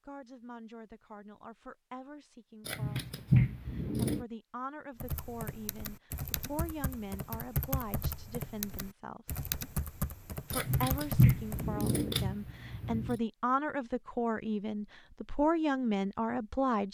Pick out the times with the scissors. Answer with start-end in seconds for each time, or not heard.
2.6-4.2, 10.5-13.2.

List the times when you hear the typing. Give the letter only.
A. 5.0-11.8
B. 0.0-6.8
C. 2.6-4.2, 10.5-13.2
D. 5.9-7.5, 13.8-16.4
A.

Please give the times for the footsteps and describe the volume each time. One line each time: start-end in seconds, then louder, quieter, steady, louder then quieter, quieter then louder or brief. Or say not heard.
not heard.